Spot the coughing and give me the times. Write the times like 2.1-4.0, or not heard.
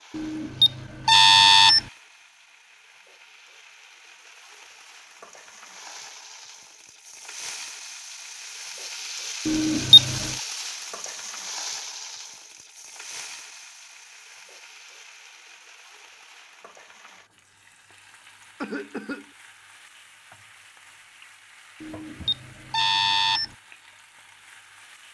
18.6-19.3.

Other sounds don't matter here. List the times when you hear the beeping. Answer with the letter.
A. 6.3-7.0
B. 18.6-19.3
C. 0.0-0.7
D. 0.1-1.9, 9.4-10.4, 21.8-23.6
D.